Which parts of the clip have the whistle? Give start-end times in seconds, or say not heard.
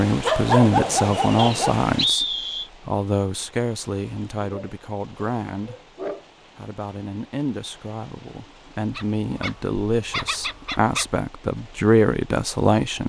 1.4-2.7.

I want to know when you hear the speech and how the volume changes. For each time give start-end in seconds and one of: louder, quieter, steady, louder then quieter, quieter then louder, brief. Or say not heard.
0.0-5.8 quieter
6.5-13.0 louder.